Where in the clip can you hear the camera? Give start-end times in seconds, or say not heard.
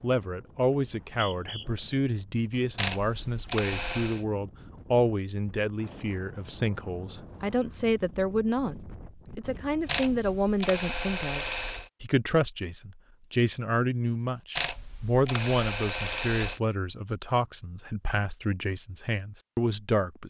2.8-4.2, 9.8-11.9, 14.6-16.6.